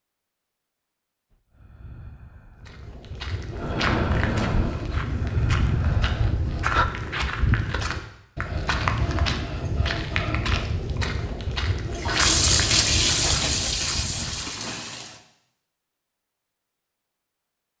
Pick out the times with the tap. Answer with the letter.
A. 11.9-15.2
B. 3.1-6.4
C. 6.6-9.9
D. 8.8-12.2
A.